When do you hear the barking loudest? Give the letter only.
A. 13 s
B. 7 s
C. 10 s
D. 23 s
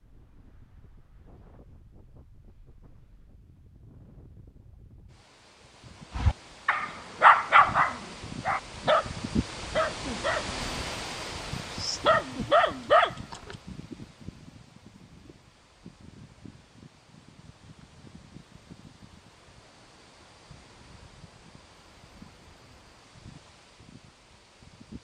B.